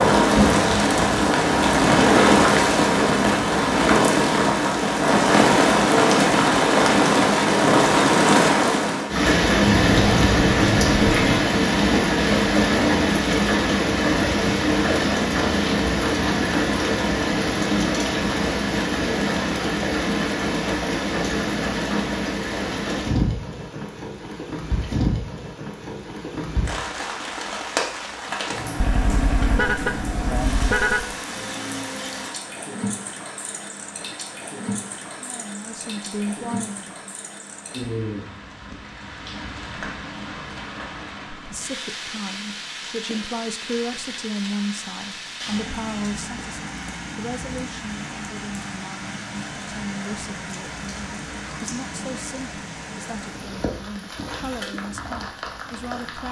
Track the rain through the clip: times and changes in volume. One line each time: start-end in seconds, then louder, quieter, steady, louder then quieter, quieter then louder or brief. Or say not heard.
0.0-56.2 quieter.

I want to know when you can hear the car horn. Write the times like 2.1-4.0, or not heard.
9.7-11.2, 28.8-31.1.